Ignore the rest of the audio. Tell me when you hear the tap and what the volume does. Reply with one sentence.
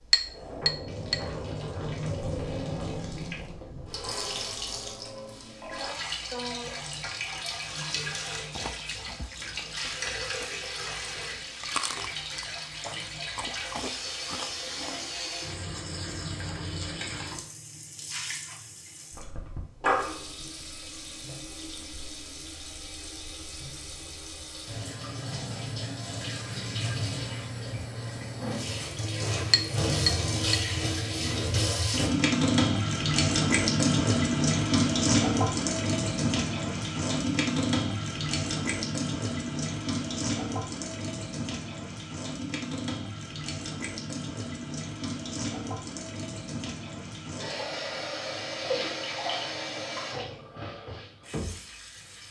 The tap can be heard from 0.0 to 52.2 s, getting louder then quieter.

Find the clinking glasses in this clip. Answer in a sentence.
You can hear the clinking glasses from 0.1 to 1.1 s and from 29.5 to 30.6 s.